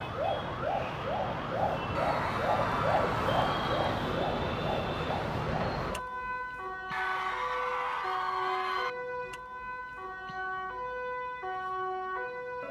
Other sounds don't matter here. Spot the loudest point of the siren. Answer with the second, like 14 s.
3 s.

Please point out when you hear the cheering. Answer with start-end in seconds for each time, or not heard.
1.9-4.0, 6.9-8.9.